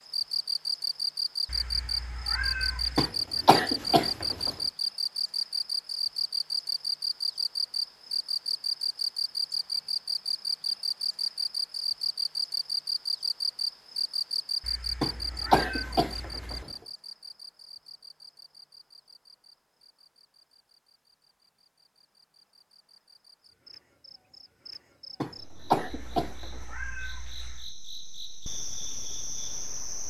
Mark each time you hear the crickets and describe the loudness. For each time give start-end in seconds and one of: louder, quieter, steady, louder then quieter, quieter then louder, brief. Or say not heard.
0.0-30.0 quieter then louder.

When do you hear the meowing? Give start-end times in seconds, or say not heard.
1.4-3.1, 14.6-16.6, 25.9-27.7.